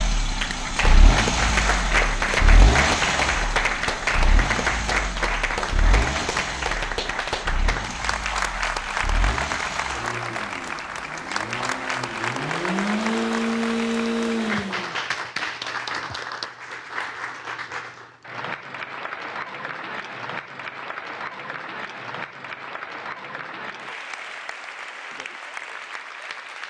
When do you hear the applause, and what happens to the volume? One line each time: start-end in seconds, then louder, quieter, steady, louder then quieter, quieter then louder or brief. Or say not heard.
0.2-26.6 quieter.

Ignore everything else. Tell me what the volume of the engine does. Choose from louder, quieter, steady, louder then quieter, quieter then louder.
quieter then louder.